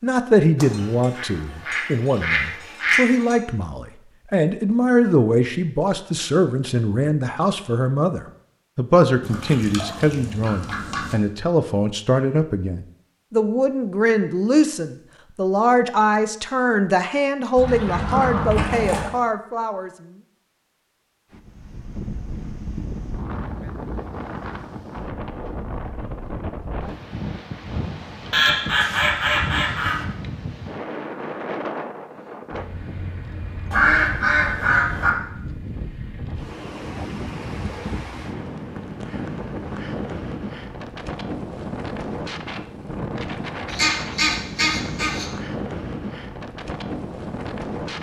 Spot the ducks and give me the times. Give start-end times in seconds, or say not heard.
0.6-3.4, 9.2-11.2, 17.6-19.1, 28.3-30.1, 33.7-35.1, 43.7-45.3.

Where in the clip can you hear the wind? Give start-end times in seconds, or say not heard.
21.3-47.9.